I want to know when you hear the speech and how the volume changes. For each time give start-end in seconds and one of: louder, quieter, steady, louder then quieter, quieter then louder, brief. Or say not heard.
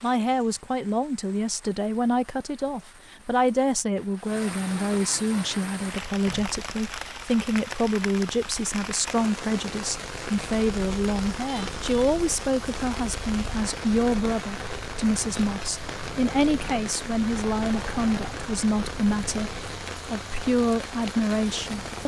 0.0-22.0 steady.